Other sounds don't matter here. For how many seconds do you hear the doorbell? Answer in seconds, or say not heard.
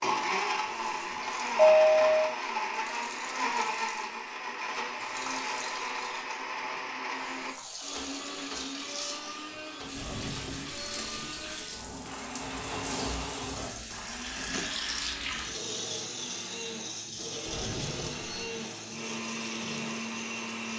4 s.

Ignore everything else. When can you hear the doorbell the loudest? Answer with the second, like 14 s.
2 s.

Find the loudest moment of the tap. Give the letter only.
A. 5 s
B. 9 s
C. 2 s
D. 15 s
D.